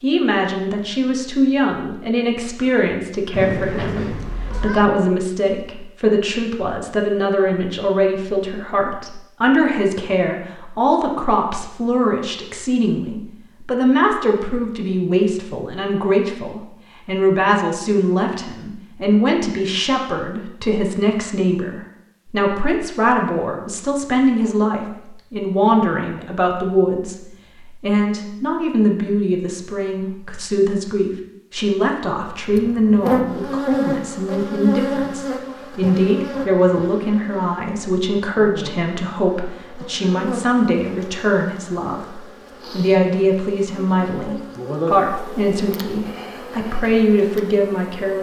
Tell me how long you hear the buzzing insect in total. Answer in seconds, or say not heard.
16 s.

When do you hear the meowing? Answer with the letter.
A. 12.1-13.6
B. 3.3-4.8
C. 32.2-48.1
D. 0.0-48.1
B.